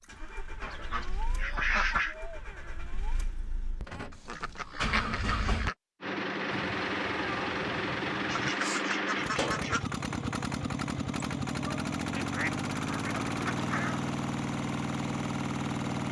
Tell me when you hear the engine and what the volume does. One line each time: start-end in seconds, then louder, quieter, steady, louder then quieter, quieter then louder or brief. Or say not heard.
0.0-16.0 louder.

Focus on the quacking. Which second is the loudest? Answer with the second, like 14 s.
2 s.